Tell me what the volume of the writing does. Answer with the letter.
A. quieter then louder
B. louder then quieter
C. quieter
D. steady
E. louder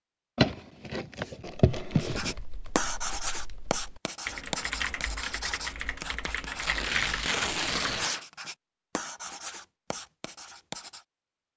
C.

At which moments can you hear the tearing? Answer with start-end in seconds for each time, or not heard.
0.3-2.4, 6.6-8.2.